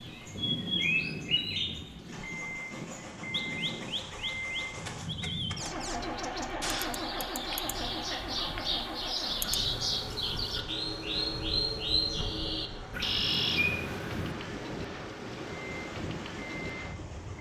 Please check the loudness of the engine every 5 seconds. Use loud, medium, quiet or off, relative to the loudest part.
loud, loud, medium, medium.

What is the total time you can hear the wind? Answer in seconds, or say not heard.
17 s.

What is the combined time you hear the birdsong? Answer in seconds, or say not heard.
14 s.